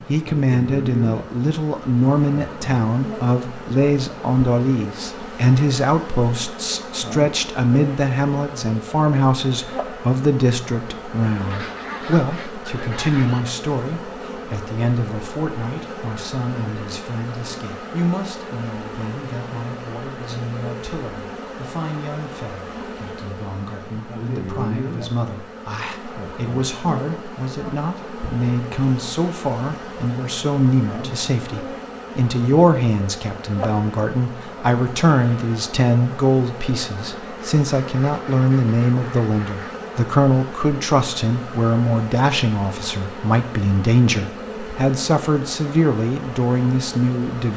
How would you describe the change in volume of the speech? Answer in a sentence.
The loudness of the speech goes down, then up.